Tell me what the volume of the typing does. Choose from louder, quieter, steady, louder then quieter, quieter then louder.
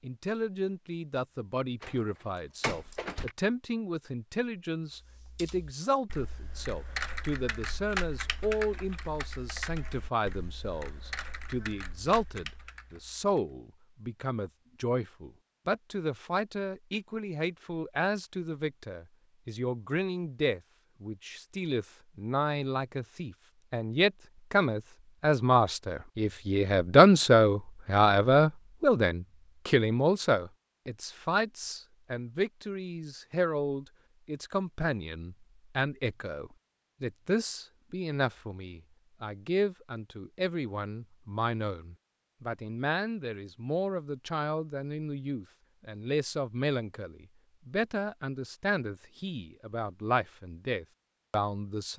louder then quieter.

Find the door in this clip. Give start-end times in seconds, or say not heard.
1.8-3.4.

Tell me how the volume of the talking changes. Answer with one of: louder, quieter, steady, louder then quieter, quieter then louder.
louder then quieter.